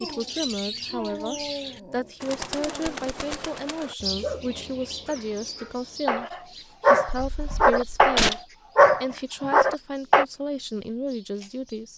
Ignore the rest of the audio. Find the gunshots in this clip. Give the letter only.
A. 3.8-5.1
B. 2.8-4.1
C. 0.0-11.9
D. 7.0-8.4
D.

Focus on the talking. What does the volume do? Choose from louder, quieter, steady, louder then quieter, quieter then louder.
steady.